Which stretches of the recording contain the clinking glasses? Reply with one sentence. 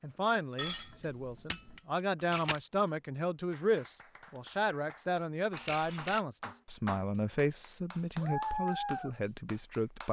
The clinking glasses can be heard from 0.6 to 1.8 s.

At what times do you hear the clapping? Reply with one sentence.
The clapping can be heard from 3.5 to 10.0 s.